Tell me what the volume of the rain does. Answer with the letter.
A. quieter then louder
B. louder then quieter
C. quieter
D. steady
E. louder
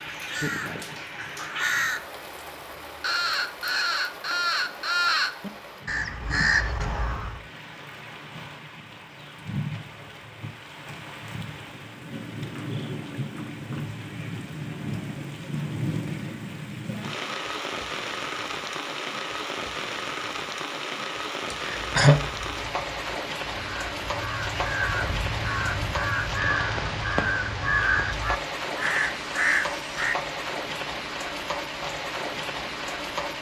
E.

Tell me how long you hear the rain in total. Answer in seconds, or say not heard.
33 s.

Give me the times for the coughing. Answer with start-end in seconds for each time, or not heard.
21.5-22.1.